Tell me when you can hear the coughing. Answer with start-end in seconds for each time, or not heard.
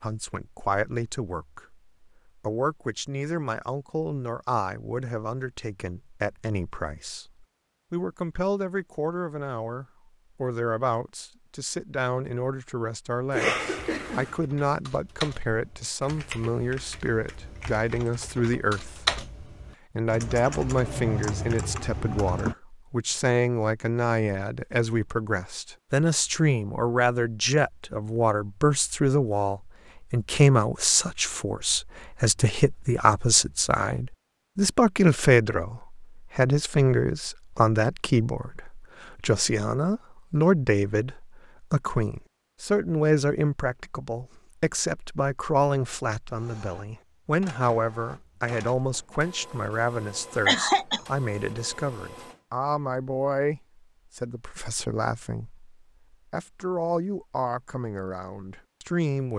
13.3-14.3, 50.5-51.0.